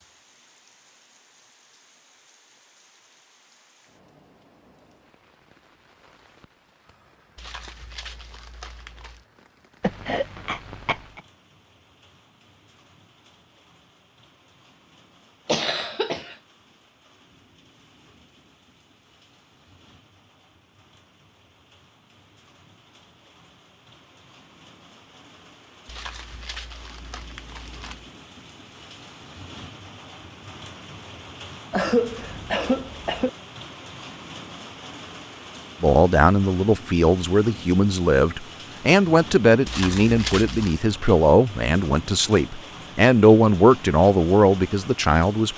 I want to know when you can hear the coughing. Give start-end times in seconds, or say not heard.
9.8-11.2, 15.4-16.4, 31.7-33.3.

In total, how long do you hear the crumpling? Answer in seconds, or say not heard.
5 s.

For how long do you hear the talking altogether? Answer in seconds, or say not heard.
10 s.